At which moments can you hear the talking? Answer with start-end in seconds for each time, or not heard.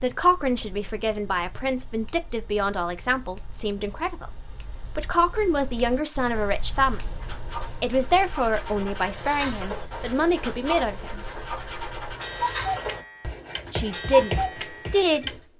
0.0-7.2, 7.8-11.3, 13.7-15.3.